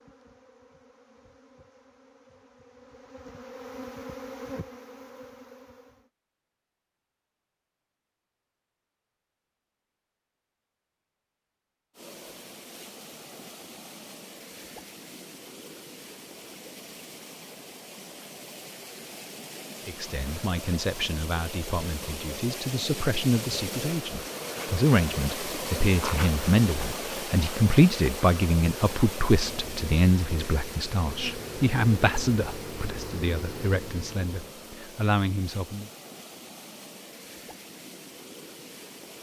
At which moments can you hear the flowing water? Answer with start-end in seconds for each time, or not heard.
11.9-39.1.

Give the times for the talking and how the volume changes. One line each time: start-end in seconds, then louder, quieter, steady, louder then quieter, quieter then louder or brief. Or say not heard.
19.9-35.9 louder then quieter.